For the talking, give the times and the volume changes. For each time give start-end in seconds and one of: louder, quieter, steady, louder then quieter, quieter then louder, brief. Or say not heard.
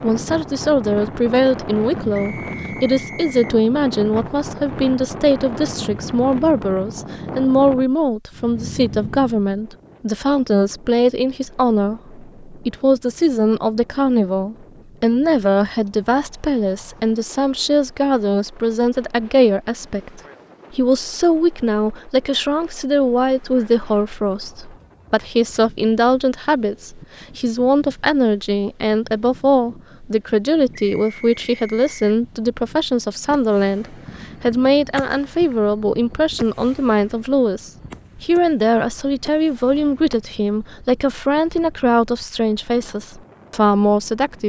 0.0-44.4 steady.